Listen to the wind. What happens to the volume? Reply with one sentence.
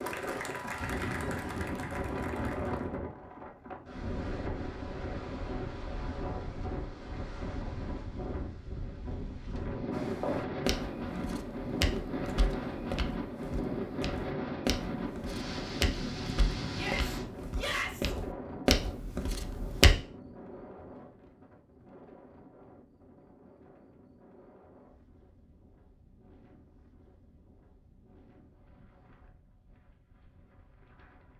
The loudness of the wind goes down.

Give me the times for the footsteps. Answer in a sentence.
You can hear the footsteps from 9.9 to 19.9 s.